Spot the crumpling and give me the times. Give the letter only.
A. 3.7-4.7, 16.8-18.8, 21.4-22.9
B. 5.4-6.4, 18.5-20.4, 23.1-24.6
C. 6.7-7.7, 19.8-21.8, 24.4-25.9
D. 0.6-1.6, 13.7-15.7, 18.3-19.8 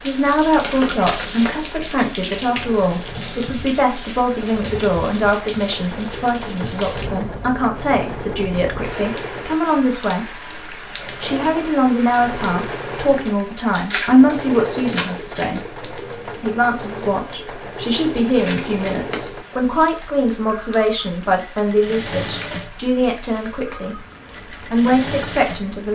D.